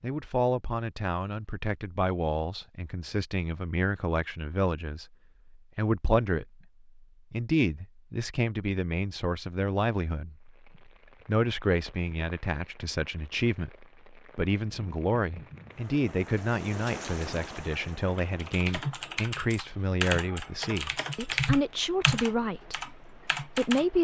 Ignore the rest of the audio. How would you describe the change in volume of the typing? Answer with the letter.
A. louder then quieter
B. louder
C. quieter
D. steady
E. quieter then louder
A.